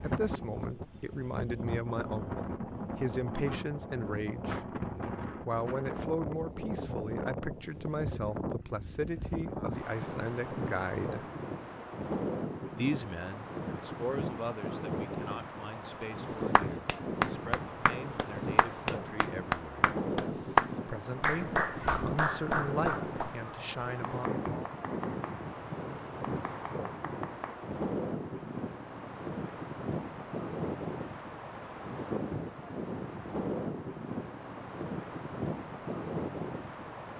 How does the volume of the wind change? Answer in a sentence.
The loudness of the wind stays about the same.